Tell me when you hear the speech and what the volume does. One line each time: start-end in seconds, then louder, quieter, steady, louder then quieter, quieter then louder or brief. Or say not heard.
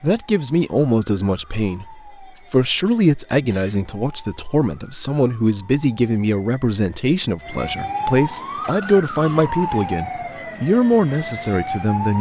0.0-12.1 steady.